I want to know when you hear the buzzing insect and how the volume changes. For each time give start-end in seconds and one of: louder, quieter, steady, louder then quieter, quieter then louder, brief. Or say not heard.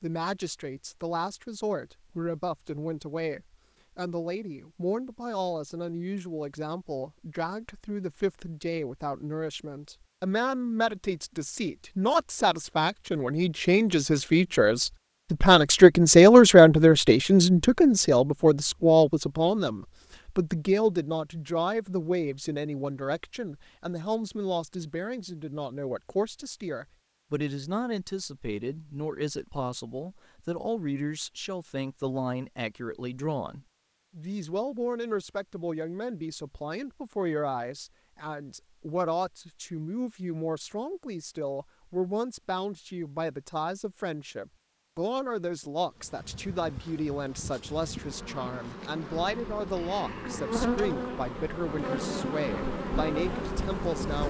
45.9-54.2 louder.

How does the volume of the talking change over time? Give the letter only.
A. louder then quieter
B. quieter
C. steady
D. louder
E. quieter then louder
A.